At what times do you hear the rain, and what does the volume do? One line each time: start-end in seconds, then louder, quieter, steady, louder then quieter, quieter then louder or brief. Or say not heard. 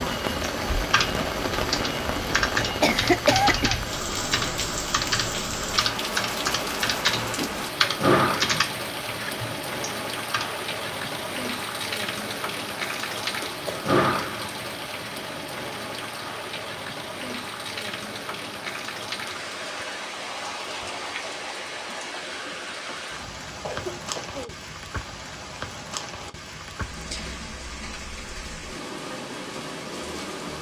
0.0-30.5 quieter.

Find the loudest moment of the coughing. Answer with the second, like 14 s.
3 s.